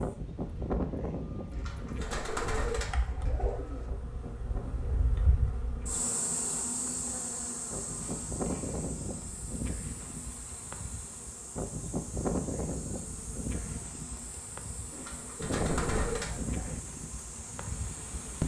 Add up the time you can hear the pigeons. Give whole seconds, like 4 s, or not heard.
4 s.